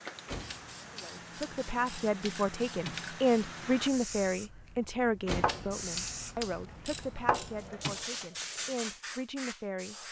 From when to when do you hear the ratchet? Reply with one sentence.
The ratchet can be heard from 0.2 to 3.1 s and from 5.2 to 8.1 s.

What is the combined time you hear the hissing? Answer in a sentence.
You can hear the hissing for 10 seconds altogether.